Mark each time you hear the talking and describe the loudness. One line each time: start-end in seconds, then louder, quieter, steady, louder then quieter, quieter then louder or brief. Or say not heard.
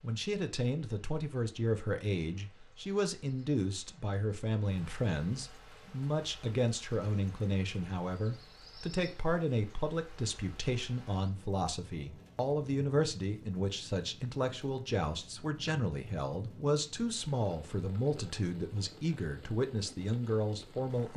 0.0-21.1 steady.